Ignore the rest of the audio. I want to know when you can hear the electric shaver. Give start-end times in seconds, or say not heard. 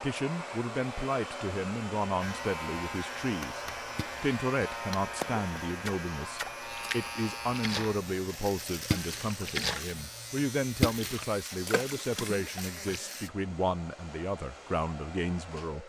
2.2-13.3.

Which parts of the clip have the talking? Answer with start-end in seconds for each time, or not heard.
0.0-3.6, 4.2-15.8.